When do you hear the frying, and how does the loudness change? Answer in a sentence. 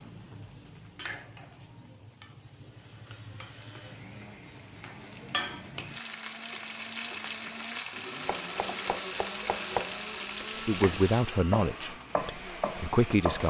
The frying can be heard from 0.0 to 11.2 s, getting louder.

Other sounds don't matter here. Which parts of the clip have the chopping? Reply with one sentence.
You can hear the chopping from 8.2 to 13.4 s.